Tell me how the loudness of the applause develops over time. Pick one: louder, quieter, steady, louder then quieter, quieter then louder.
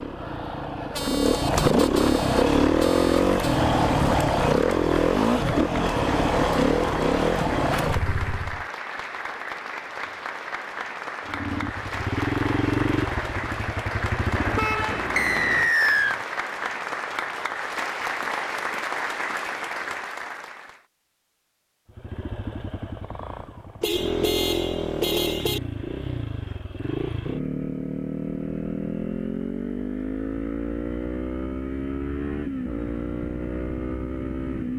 louder.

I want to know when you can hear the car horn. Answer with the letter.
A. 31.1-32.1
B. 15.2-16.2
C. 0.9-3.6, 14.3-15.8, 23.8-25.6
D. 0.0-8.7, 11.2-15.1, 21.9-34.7
C.